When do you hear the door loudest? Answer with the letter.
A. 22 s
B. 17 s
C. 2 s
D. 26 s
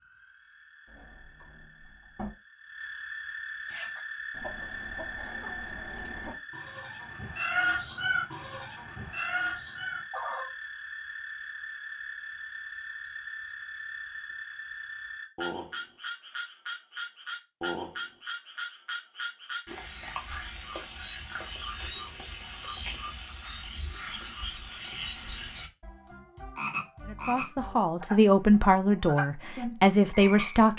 C.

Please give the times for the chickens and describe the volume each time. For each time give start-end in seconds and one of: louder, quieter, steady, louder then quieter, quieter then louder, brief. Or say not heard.
3.6-10.5 louder.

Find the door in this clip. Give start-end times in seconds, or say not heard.
0.8-2.3.